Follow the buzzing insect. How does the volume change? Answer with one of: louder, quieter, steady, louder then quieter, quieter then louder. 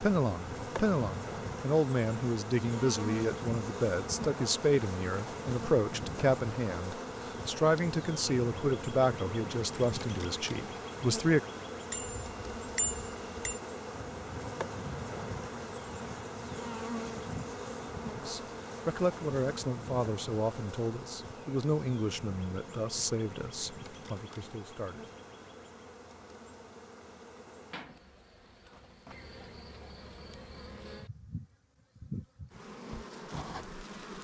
quieter.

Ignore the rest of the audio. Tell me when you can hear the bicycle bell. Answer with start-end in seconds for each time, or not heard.
11.9-13.6.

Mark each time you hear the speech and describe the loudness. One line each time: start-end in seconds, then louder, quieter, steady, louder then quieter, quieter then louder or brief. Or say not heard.
0.0-11.4 steady
18.2-25.1 quieter.